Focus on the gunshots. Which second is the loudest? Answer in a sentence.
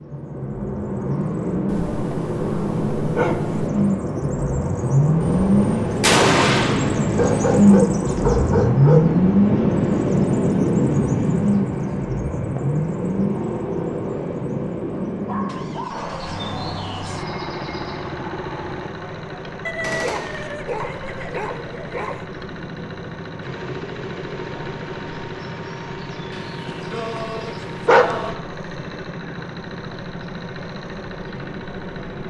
The loudest moment of the gunshots is at 6 seconds.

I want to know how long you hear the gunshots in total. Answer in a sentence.
You can hear the gunshots for 3 seconds altogether.